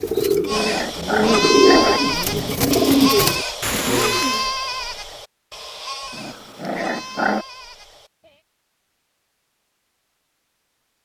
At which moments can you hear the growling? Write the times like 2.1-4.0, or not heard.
0.0-2.0, 6.1-7.5.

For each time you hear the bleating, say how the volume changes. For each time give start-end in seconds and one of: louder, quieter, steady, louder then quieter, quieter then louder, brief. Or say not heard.
0.5-8.4 quieter.